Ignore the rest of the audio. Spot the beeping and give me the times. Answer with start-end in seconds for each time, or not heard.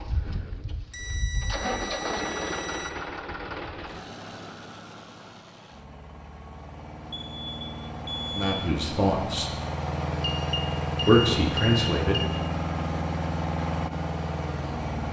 0.9-2.9, 7.1-8.6, 10.2-12.3.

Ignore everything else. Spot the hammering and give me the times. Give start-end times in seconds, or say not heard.
not heard.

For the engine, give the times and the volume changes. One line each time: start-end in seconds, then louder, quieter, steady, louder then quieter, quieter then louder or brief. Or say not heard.
0.0-15.0 quieter then louder.